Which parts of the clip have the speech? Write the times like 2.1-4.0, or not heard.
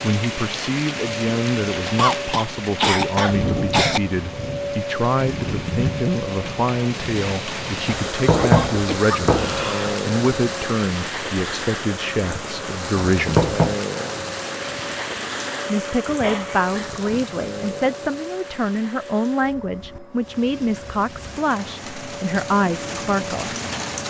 0.0-13.5, 15.7-23.5.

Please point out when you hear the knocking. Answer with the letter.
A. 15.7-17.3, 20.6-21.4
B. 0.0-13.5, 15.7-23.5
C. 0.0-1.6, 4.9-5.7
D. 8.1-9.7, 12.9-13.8
D.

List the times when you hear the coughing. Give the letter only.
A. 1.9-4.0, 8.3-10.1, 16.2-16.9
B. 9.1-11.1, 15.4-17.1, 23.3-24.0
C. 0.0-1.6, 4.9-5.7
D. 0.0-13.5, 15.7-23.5
A.